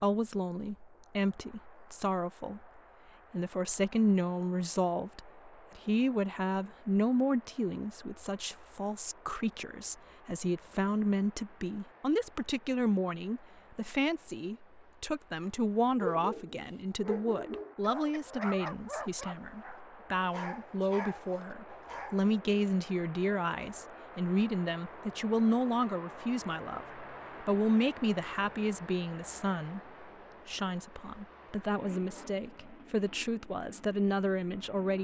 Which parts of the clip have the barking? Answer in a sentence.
The barking can be heard from 15.4 to 22.3 s.